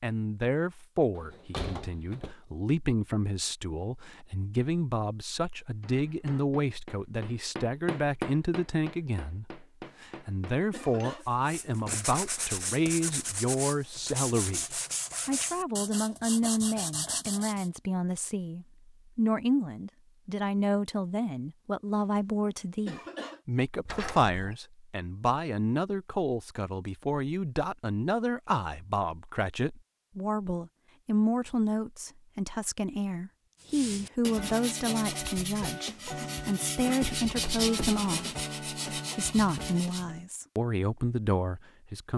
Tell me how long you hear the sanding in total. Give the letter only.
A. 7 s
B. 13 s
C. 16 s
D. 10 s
B.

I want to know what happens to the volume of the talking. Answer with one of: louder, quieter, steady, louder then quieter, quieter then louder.
steady.